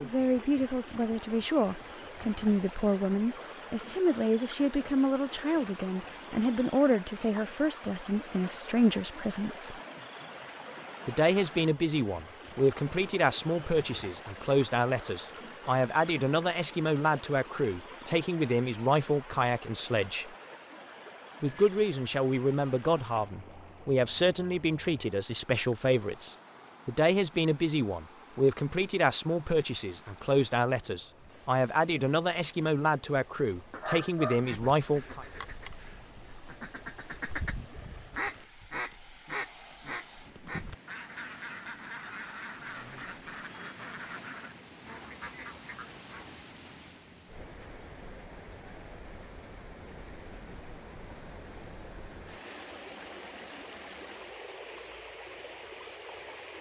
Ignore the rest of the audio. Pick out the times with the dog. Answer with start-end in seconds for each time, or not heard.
33.7-35.2.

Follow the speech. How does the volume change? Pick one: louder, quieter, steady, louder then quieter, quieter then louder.
steady.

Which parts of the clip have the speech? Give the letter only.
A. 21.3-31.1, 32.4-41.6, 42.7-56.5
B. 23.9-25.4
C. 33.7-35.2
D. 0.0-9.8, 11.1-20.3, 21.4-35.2
D.